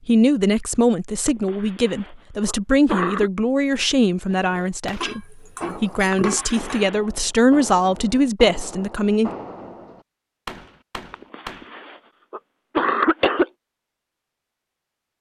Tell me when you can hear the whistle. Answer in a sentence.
The whistle can't be heard in this clip.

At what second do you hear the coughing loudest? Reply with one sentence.
The loudest moment of the coughing is at 13 seconds.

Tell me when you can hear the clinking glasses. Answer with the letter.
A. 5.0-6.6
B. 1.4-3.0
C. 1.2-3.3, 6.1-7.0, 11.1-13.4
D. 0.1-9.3
A.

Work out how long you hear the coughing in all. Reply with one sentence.
The coughing can be heard for 5 seconds in total.